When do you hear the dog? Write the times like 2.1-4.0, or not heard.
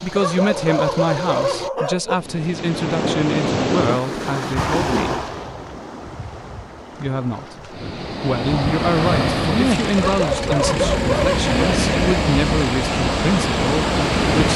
0.1-2.1, 9.9-11.8.